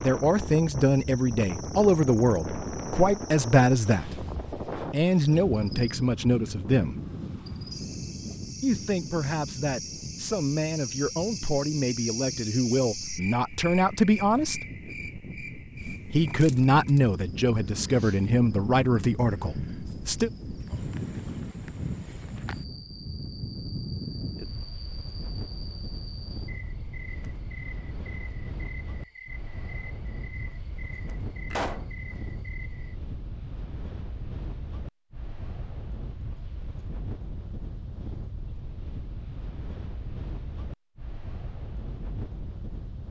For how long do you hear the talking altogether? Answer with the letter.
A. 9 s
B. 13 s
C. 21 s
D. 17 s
D.